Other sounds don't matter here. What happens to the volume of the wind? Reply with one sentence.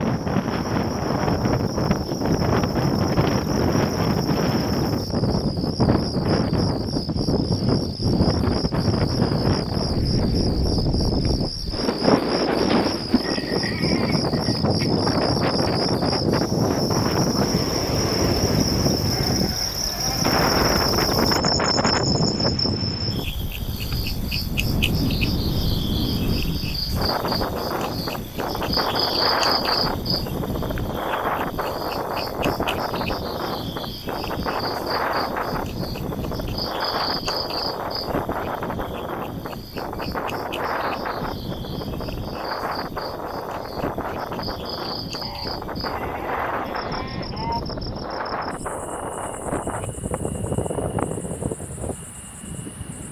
The loudness of the wind goes down.